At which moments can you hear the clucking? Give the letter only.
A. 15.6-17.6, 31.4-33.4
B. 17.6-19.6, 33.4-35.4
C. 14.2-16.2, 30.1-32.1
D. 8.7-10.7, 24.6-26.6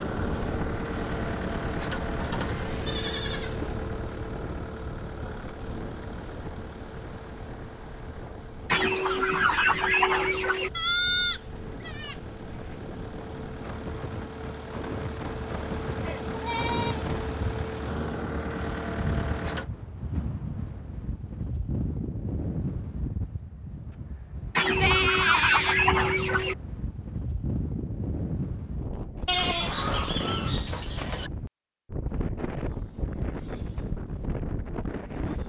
D.